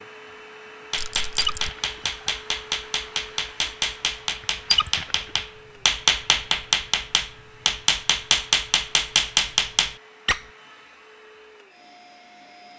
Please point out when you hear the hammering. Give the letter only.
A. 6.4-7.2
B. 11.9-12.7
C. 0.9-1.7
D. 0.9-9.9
D.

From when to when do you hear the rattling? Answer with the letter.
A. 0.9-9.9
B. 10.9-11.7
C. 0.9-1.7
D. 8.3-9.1
C.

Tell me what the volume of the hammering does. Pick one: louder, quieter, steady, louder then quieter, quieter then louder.
louder.